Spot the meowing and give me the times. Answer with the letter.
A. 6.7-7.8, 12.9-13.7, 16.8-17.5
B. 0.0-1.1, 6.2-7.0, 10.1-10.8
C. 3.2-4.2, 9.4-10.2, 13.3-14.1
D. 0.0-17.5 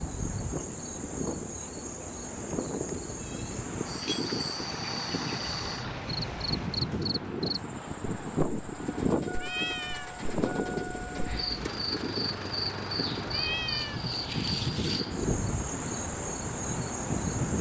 C.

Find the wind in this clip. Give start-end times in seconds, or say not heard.
0.0-17.5.